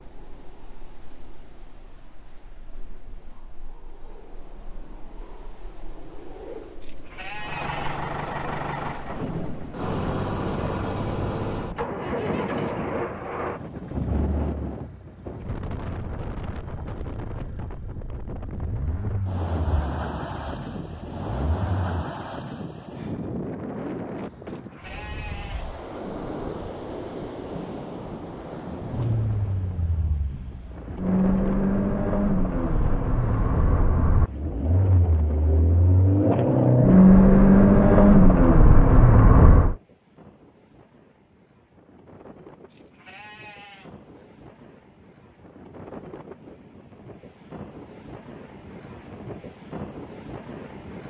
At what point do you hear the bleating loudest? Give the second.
7 s.